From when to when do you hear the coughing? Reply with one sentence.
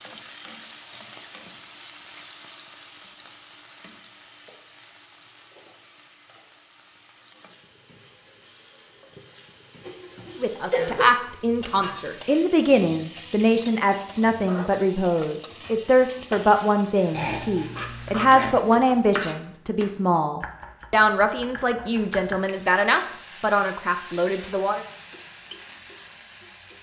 The coughing can be heard from 9.8 to 11.1 s and from 17.1 to 18.6 s.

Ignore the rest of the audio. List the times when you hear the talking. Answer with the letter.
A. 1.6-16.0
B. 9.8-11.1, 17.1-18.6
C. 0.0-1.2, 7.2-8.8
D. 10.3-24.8
D.